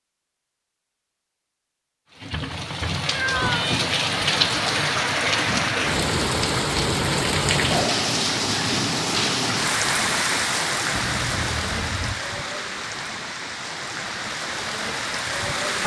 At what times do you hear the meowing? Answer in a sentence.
You can hear the meowing from 3.0 to 3.9 s and from 10.9 to 12.2 s.